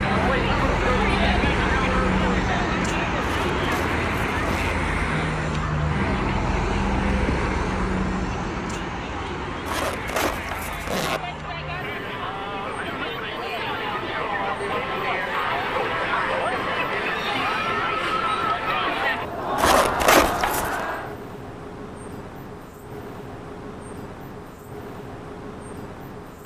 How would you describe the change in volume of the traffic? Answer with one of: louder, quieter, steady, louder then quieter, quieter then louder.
quieter.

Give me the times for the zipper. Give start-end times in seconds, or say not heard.
3.2-4.8, 9.7-11.2, 19.6-20.9.